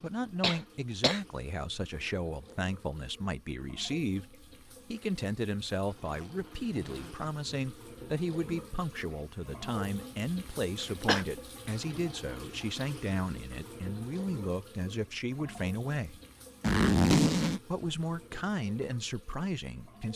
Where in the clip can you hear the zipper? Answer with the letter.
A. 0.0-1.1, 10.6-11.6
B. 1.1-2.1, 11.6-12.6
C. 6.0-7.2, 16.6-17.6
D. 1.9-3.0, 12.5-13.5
C.